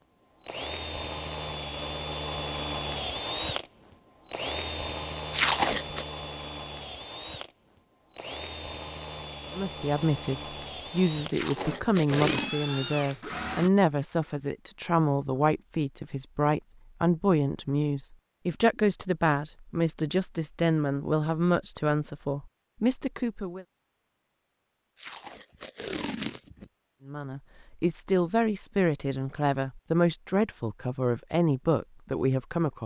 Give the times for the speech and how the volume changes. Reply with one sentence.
You can hear the speech from 9.5 to 23.6 s, at a steady volume; and from 27.1 to 32.8 s, at a steady volume.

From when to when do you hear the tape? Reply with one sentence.
The tape can be heard from 5.3 to 6.0 s, from 11.3 to 12.6 s and from 24.9 to 26.6 s.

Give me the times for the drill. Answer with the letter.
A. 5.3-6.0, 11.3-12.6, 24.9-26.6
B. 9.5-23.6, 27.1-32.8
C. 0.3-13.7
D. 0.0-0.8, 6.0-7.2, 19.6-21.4
C.